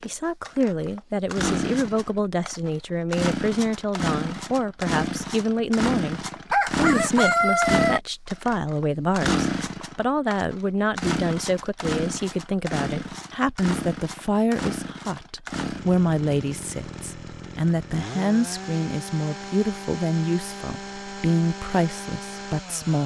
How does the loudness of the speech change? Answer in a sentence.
The loudness of the speech stays about the same.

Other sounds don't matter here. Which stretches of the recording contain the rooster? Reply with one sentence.
You can hear the rooster from 6.5 to 8.0 s.